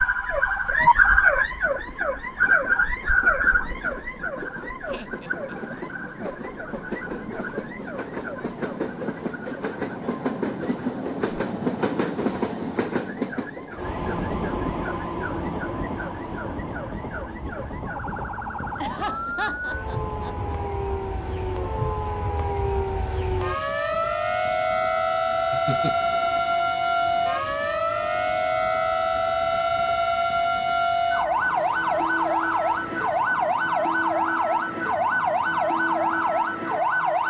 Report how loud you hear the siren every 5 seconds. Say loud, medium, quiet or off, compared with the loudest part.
loud, quiet, quiet, quiet, medium, loud, loud, loud.